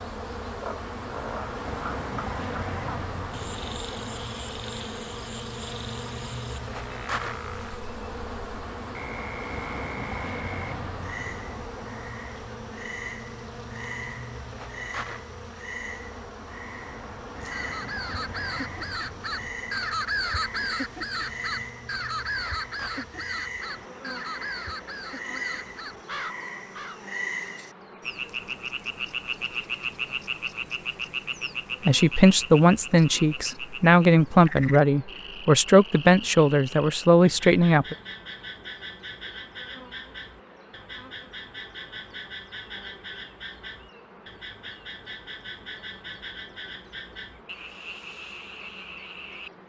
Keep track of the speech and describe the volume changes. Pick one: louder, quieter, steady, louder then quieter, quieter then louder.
steady.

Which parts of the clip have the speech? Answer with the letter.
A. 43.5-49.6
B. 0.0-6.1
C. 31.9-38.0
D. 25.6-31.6
C.